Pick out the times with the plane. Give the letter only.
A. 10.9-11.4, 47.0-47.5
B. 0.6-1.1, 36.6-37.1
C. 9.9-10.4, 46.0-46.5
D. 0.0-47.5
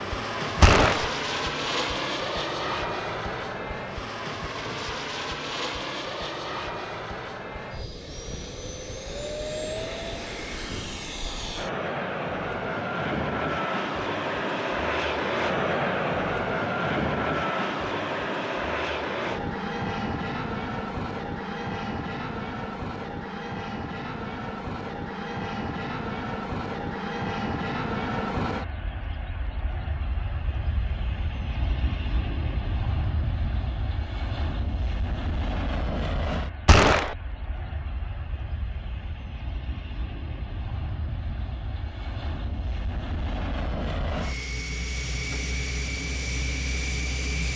D.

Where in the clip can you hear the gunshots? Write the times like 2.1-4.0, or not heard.
0.6-1.1, 36.6-37.1.